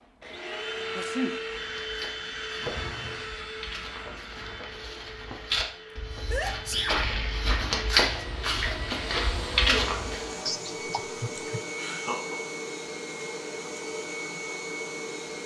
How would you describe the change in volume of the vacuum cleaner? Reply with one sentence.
The loudness of the vacuum cleaner goes down, then up.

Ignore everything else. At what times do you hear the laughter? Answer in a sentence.
The laughter can be heard from 2.6 to 3.3 s and from 11.3 to 12.4 s.